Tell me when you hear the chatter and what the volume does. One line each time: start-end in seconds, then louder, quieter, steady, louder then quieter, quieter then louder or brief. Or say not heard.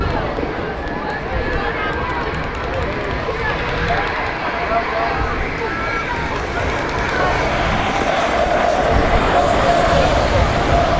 0.0-10.9 louder.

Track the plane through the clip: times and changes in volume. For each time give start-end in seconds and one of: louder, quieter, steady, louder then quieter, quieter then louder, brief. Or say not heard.
0.0-10.9 steady.